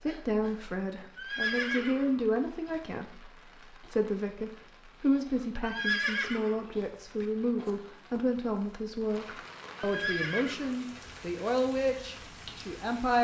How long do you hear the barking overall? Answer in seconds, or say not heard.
not heard.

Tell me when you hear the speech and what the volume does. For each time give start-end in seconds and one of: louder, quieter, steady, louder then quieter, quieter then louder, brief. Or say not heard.
0.0-13.1 steady.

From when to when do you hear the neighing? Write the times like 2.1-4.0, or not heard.
1.1-2.8, 5.6-7.2, 9.8-11.4.